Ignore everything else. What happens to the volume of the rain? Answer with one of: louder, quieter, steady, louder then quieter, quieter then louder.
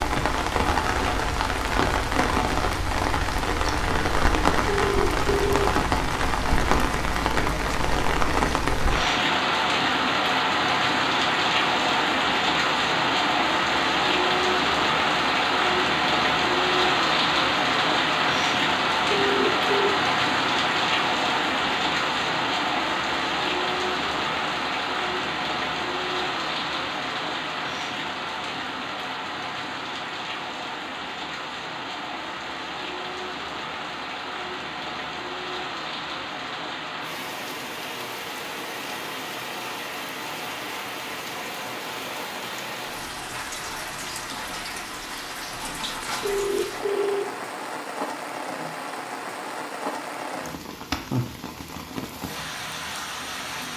quieter.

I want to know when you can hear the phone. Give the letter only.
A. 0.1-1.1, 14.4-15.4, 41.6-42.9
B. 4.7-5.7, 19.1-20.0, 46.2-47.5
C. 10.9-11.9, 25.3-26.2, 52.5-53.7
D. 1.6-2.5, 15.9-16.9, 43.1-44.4
B.